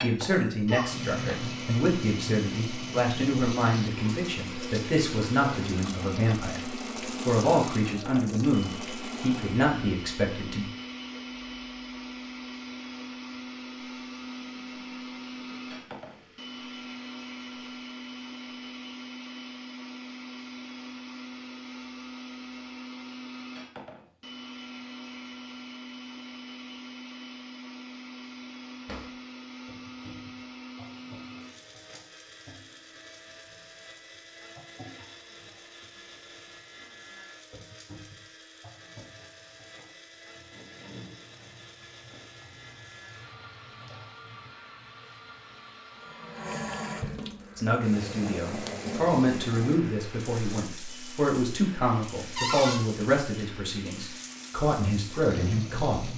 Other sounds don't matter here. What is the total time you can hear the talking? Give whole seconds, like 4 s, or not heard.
19 s.